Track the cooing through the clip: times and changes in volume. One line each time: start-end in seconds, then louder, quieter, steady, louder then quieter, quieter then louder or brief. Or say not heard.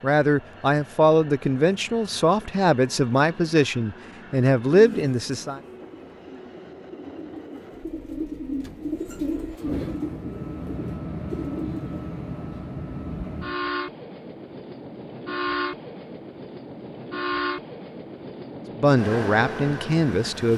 4.7-11.8 louder then quieter.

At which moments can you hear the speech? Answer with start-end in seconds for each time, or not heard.
0.0-5.6, 18.8-20.5.